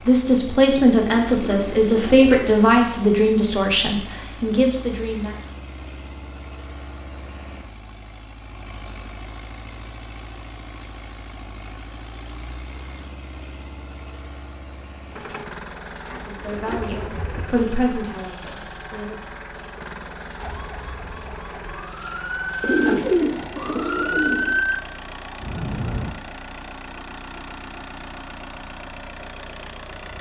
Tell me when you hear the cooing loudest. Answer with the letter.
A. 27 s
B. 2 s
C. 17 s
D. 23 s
D.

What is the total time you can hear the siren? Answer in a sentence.
The siren can be heard for 6 seconds in total.